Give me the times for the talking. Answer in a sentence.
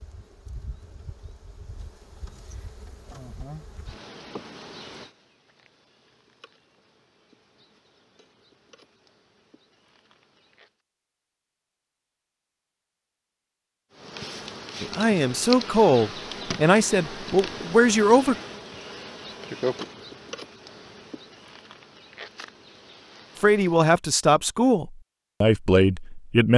You can hear the talking from 14.8 to 18.4 s and from 23.4 to 26.5 s.